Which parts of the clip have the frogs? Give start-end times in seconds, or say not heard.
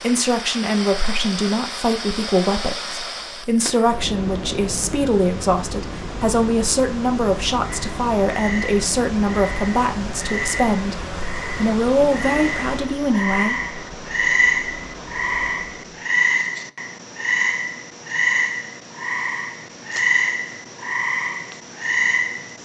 7.6-22.6.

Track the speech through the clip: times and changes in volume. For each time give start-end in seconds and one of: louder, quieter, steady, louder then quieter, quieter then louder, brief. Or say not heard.
0.0-10.9 steady
11.6-13.6 brief.